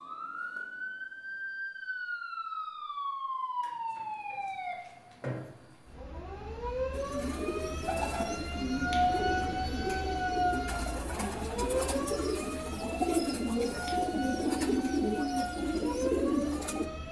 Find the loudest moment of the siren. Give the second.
9 s.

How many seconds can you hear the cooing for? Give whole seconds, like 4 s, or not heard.
10 s.